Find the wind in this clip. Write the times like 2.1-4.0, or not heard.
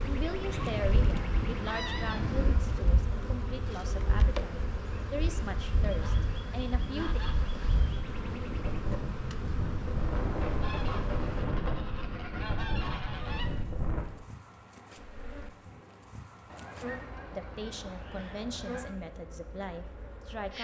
0.0-14.1.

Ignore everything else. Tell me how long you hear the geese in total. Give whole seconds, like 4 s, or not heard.
9 s.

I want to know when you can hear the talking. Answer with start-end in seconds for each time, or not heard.
0.0-7.2, 17.3-20.6.